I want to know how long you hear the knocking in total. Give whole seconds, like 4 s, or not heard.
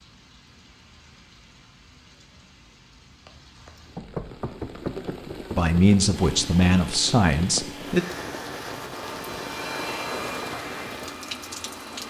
2 s.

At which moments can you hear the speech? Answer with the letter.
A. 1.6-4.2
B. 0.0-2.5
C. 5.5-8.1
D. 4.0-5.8
C.